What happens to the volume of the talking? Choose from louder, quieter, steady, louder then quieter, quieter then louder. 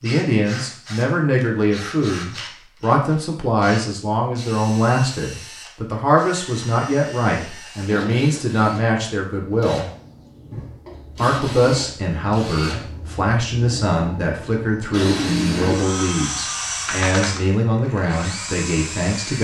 steady.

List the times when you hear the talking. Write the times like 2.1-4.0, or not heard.
0.0-9.9, 11.2-19.3.